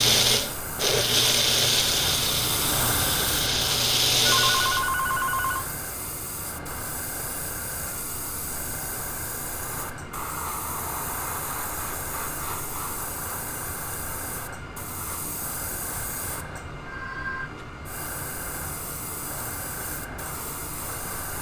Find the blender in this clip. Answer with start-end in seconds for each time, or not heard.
0.0-4.9.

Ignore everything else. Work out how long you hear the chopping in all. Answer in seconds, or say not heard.
not heard.